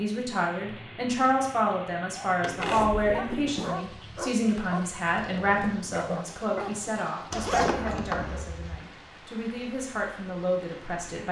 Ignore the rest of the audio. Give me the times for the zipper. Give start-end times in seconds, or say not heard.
2.6-3.8, 7.3-8.8.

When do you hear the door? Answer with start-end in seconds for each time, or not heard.
2.4-3.0, 7.5-8.4.